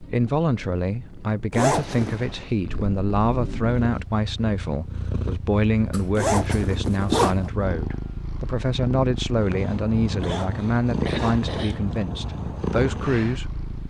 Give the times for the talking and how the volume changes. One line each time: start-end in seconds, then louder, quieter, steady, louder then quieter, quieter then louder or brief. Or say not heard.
0.0-13.6 steady.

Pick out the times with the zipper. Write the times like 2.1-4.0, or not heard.
1.5-2.2, 6.2-7.5, 10.2-12.1.